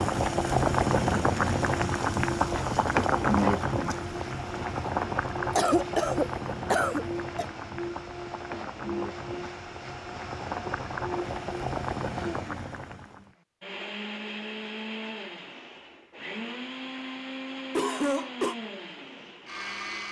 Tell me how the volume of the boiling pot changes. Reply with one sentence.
The volume of the boiling pot goes down, then up.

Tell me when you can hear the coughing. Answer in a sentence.
The coughing can be heard from 5.5 to 7.5 s and from 17.8 to 18.6 s.